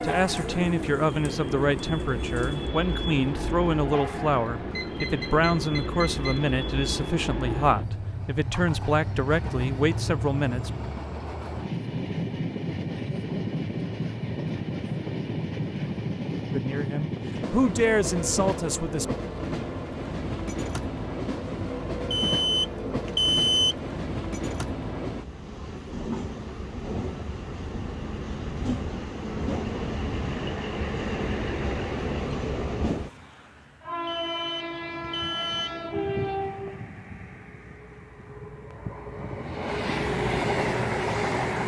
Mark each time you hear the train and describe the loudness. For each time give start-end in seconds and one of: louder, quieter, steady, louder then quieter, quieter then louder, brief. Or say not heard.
0.0-41.6 steady.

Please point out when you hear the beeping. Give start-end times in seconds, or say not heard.
4.8-6.5, 22.1-23.9, 34.0-35.7.